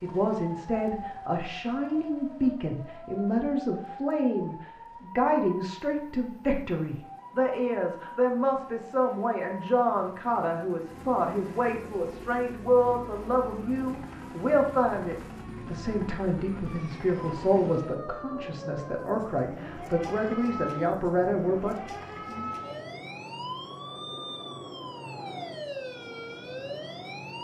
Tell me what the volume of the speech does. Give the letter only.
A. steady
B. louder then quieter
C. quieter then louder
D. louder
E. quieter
A.